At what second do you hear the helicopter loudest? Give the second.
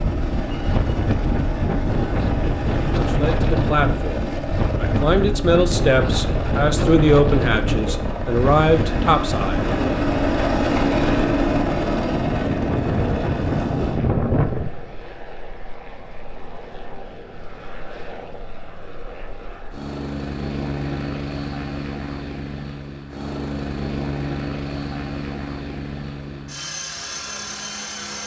11 s.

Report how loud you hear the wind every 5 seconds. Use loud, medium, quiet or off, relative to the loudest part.
loud, loud, loud, off, off, off.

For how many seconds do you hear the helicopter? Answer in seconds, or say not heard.
28 s.